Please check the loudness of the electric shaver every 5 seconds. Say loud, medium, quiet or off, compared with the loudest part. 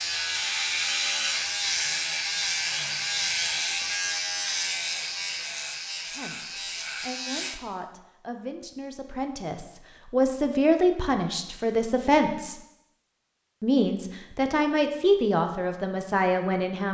loud, medium, off, off.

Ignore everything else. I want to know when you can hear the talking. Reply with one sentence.
You can hear the talking from 6.0 to 12.6 s and from 13.6 to 16.9 s.